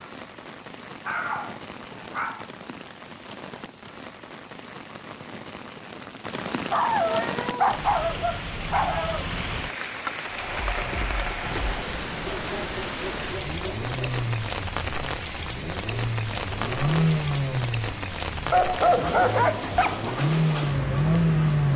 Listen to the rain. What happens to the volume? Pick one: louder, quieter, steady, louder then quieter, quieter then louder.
louder.